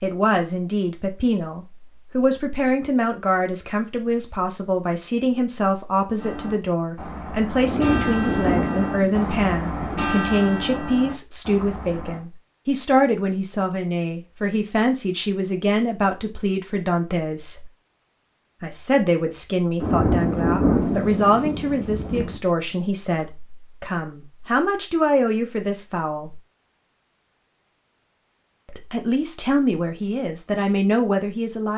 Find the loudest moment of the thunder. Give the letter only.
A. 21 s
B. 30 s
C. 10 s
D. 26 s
A.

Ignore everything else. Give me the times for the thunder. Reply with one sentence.
The thunder can be heard from 7.6 to 10.2 s and from 19.8 to 22.4 s.